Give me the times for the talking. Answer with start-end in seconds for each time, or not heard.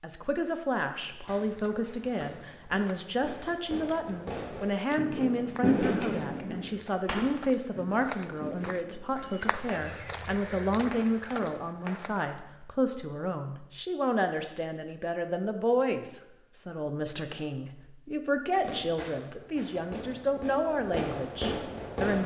0.0-22.2.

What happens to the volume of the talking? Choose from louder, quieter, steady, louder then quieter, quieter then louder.
steady.